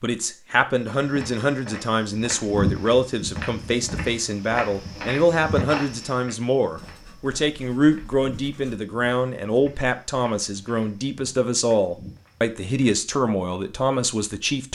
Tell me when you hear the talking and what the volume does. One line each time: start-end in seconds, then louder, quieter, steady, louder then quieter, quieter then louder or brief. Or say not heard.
0.0-14.7 steady.